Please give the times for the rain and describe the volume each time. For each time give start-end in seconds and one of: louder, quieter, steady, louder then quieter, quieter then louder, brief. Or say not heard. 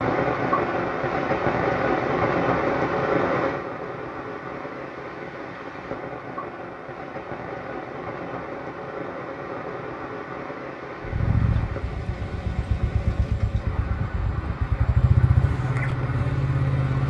0.0-17.0 quieter.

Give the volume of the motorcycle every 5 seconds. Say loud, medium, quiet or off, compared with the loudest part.
off, off, medium, loud.